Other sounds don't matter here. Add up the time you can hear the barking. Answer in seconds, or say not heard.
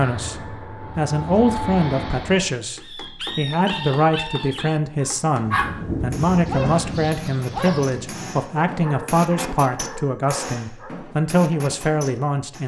8 s.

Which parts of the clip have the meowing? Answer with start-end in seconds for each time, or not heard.
not heard.